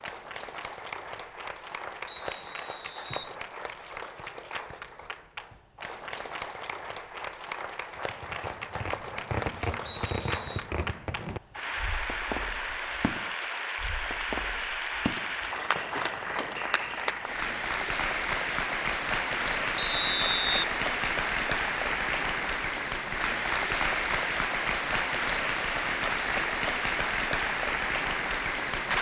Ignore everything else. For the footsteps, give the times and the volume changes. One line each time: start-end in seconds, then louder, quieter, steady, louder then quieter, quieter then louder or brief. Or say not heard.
not heard.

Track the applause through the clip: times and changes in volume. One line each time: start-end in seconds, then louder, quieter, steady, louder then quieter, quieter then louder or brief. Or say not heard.
0.0-28.9 louder.